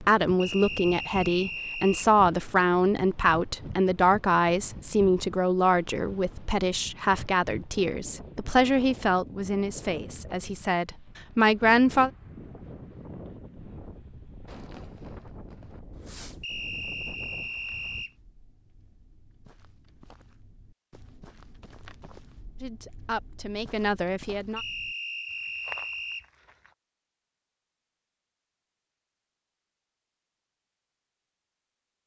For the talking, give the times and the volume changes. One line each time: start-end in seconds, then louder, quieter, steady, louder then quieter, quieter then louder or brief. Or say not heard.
0.0-12.1 steady
22.6-24.6 brief.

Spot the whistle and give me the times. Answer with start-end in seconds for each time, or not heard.
0.4-2.1, 16.4-18.1, 24.6-26.2.